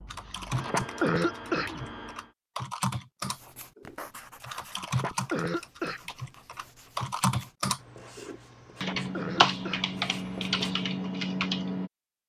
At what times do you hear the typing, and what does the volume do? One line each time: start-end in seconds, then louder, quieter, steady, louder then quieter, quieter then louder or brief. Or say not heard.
0.1-11.9 louder.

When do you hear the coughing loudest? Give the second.
1 s.